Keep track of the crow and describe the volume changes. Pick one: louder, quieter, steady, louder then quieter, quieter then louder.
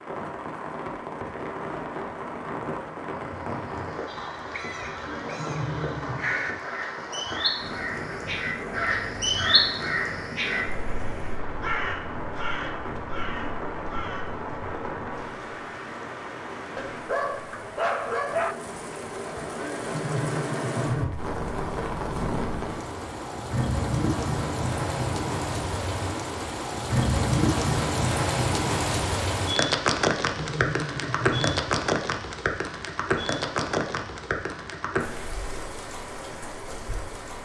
louder then quieter.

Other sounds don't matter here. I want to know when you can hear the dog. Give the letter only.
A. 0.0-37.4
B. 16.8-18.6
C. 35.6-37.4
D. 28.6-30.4
B.